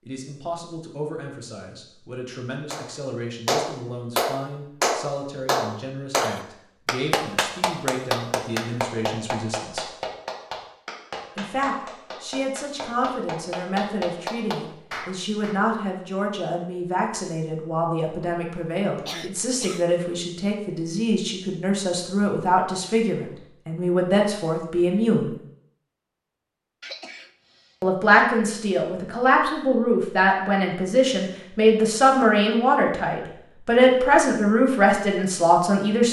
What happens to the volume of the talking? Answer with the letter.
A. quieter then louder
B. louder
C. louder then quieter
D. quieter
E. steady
B.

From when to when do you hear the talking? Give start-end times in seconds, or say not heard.
0.1-9.9, 11.3-25.4, 27.8-36.0.